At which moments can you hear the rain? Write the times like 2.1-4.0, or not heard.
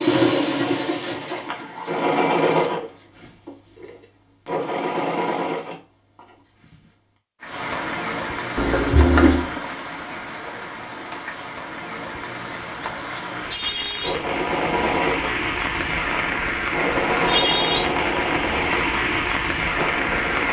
7.4-20.4.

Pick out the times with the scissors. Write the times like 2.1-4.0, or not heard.
8.6-9.5.